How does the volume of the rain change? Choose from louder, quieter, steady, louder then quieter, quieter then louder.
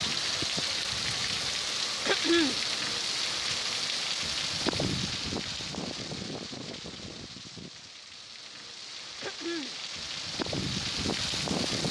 quieter then louder.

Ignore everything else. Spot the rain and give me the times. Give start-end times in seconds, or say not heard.
0.0-11.8.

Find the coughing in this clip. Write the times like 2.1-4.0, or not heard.
2.0-2.6, 9.2-9.8.